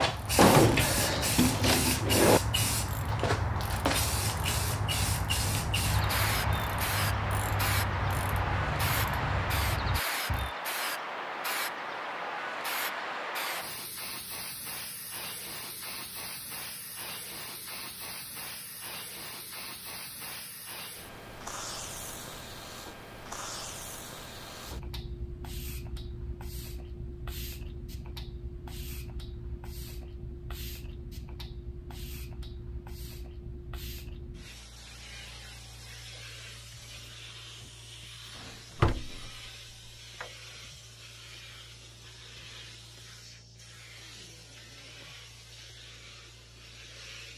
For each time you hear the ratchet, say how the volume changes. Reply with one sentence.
You can hear the ratchet from 0.1 to 10.5 s, at a steady volume.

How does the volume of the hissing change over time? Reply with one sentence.
The volume of the hissing goes down.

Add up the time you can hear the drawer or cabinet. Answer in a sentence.
You can hear the drawer or cabinet for 3 seconds altogether.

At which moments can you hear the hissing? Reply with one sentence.
The hissing can be heard from 0.0 to 47.3 s.